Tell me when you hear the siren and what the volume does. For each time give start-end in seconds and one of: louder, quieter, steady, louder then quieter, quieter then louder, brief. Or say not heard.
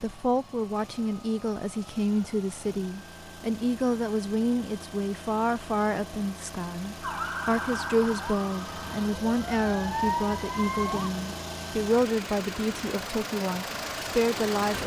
7.0-11.1 quieter then louder.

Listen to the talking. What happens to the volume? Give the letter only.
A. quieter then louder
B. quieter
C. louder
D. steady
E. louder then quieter
D.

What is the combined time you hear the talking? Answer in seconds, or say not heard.
15 s.